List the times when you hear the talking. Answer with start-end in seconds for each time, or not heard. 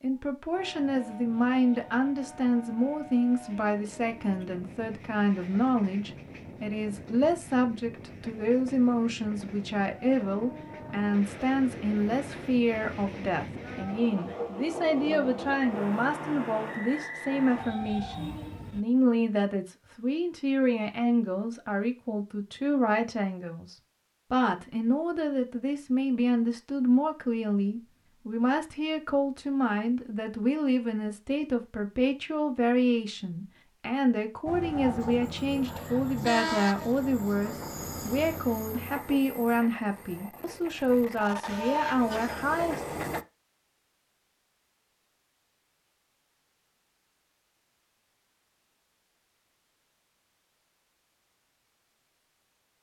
0.0-42.9.